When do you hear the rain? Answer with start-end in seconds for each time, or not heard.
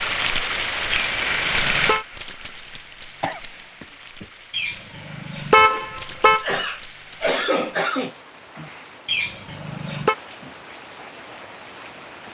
0.0-12.2.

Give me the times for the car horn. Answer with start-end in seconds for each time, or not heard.
0.9-2.0, 4.5-6.5, 9.1-10.2.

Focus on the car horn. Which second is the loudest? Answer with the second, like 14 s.
6 s.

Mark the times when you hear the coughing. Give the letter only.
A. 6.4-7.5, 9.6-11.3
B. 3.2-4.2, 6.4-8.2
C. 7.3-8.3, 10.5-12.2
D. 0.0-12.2
B.